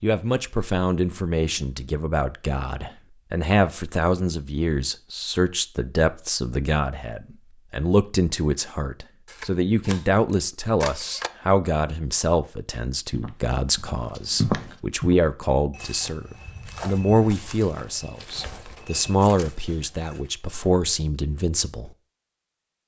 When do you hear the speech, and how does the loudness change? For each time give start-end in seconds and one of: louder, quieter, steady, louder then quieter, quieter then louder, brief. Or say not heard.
0.0-21.9 steady.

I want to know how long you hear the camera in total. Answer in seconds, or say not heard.
2 s.